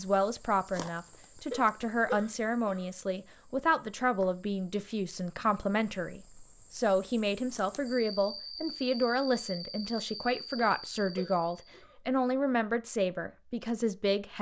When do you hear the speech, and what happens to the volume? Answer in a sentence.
The speech can be heard from 0.0 to 14.3 s, at a steady volume.